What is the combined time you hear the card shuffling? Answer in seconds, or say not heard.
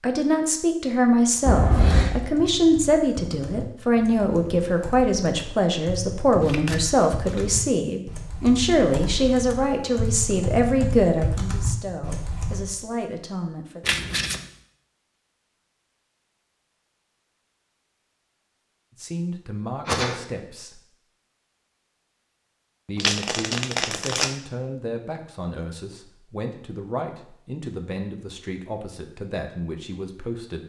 3 s.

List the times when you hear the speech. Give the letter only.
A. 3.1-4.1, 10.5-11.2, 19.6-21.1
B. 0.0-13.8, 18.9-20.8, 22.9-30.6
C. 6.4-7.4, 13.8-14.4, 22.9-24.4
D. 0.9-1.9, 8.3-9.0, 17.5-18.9
B.